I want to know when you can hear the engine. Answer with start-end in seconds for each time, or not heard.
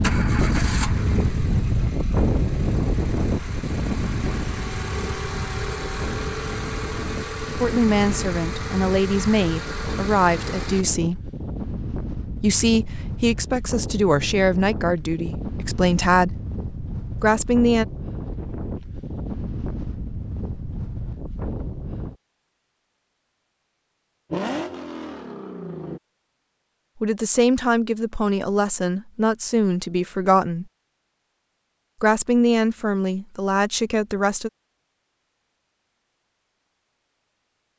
0.0-10.8, 24.3-26.0.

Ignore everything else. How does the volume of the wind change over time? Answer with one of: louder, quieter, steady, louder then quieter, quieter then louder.
quieter.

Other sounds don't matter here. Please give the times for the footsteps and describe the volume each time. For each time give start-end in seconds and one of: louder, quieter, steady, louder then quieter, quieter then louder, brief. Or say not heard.
not heard.